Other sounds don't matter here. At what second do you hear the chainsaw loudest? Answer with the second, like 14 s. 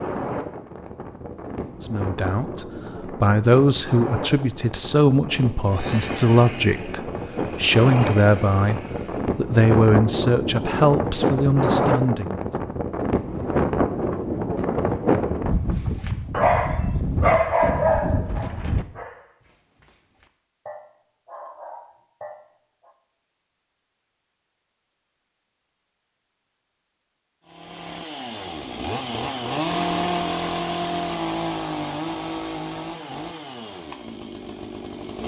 30 s.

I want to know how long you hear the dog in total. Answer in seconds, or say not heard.
7 s.